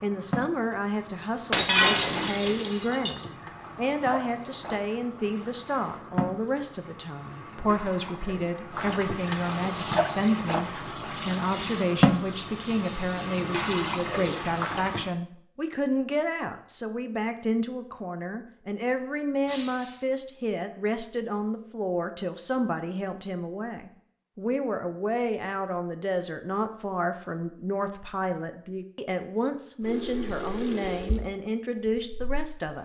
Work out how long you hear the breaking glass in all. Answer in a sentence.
You can hear the breaking glass for 2 seconds altogether.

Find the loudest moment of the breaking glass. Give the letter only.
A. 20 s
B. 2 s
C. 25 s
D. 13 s
B.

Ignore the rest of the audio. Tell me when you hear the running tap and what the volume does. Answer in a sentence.
You can hear the running tap from 0.0 to 15.1 s, getting louder; and briefly from 29.8 to 32.7 s.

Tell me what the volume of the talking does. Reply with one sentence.
The loudness of the talking stays about the same.